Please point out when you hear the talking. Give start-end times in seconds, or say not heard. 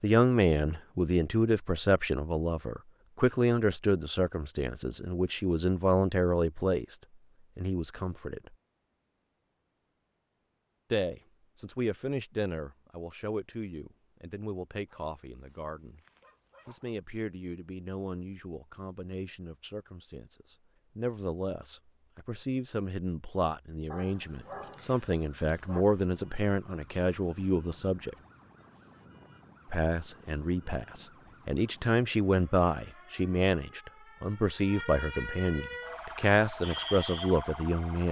0.0-7.0, 7.5-8.5, 10.9-16.0, 16.6-28.1, 29.7-38.0.